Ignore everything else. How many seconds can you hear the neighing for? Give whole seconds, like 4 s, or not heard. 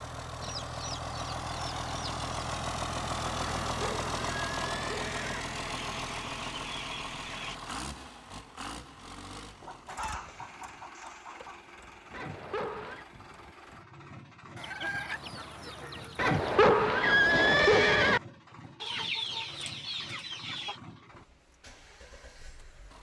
5 s.